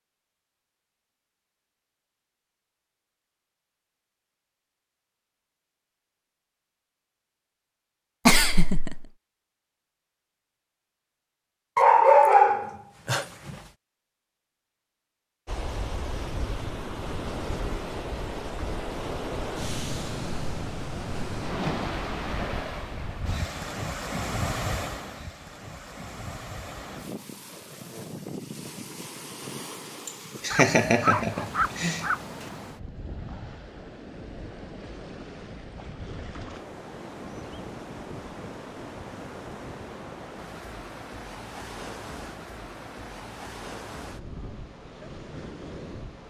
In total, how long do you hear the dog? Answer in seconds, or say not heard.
4 s.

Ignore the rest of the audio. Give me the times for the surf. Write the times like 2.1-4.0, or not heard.
15.4-46.2.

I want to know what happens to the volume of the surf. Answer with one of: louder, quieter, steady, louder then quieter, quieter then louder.
quieter.